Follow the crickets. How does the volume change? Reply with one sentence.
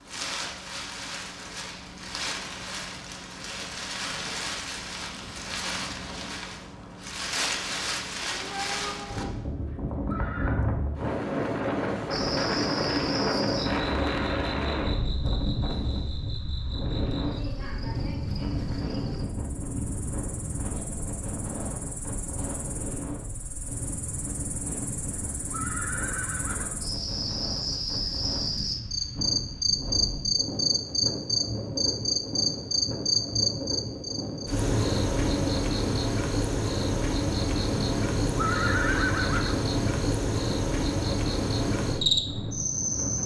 The volume of the crickets goes down, then up.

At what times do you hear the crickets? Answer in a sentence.
You can hear the crickets from 12.1 to 43.2 s.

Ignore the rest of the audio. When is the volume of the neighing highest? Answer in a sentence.
The loudest moment of the neighing is at 39 seconds.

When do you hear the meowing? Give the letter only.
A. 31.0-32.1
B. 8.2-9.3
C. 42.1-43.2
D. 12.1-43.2
B.